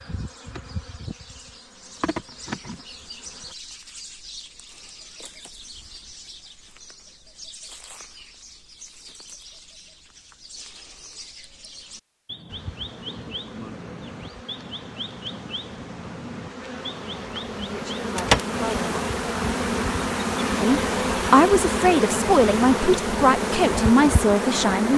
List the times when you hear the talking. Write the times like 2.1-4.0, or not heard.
17.6-18.9, 20.6-24.9.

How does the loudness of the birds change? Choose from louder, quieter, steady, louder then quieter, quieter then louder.
louder.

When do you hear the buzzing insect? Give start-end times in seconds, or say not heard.
0.0-3.5, 12.4-24.9.